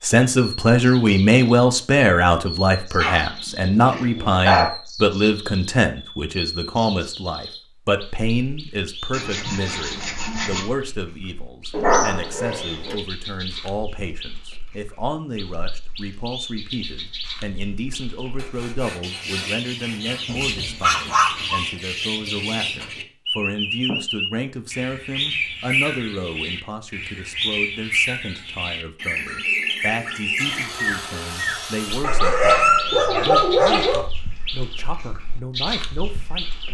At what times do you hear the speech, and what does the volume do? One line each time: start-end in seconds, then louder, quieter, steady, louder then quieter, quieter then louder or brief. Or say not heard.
0.0-36.6 quieter.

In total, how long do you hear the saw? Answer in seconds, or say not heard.
5 s.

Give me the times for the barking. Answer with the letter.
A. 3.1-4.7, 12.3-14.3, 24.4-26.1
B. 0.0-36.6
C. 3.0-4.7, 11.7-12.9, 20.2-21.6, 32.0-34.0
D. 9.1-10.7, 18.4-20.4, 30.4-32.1
C.